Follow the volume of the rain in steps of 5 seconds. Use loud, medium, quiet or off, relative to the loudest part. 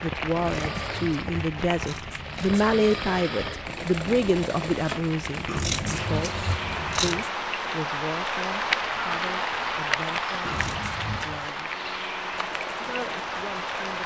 medium, loud, loud.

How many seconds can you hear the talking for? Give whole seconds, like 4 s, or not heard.
13 s.